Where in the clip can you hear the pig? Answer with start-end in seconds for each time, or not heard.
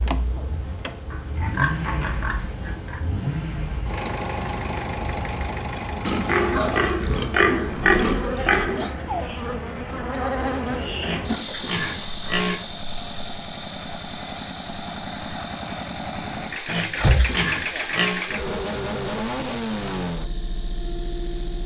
1.1-3.0, 6.0-8.9, 11.0-12.6, 16.6-18.2.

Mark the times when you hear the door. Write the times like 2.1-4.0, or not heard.
0.0-0.9, 17.0-17.4.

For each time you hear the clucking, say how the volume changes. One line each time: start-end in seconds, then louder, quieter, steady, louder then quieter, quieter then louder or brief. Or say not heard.
not heard.